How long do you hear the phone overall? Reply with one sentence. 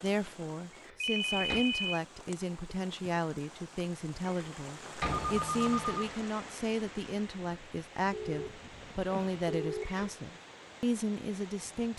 You can hear the phone for 4 seconds altogether.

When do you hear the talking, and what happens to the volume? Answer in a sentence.
The talking can be heard from 0.0 to 11.9 s, at a steady volume.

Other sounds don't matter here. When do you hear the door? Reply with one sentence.
The door can be heard from 0.7 to 1.6 s, from 4.2 to 5.5 s and from 9.8 to 10.2 s.